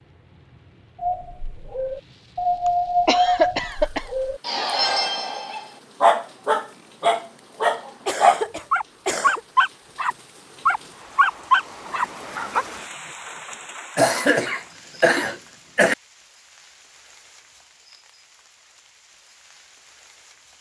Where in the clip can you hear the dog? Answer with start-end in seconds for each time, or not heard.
1.0-12.7.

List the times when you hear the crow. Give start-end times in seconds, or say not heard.
not heard.